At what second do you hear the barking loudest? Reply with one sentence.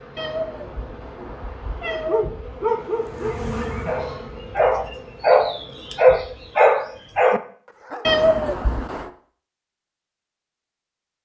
The volume of the barking peaks at 6 seconds.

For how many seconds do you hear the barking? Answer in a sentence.
The barking can be heard for 6 seconds in total.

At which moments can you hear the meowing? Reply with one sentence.
The meowing can be heard from 0.1 to 2.3 s and from 8.1 to 9.1 s.